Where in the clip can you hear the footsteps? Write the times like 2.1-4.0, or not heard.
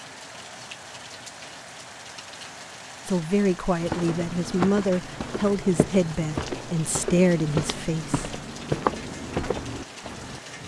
3.8-10.4.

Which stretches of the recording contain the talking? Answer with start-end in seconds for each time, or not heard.
3.0-8.3.